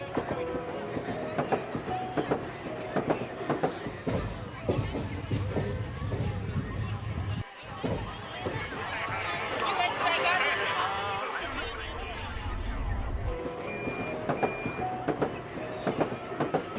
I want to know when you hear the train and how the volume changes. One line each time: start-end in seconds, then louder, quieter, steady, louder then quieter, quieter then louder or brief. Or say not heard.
0.0-16.7 quieter then louder.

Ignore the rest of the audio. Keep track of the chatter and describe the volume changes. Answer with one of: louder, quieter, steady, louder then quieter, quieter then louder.
louder then quieter.